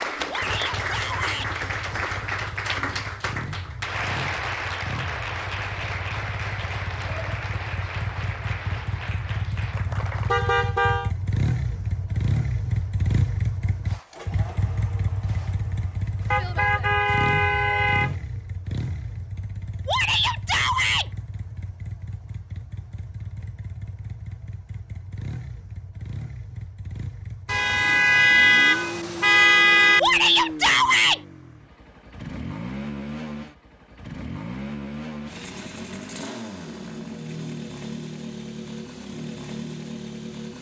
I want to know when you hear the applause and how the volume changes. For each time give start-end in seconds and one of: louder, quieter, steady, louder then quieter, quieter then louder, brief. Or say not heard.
0.0-10.3 quieter.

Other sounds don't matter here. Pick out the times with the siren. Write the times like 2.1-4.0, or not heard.
not heard.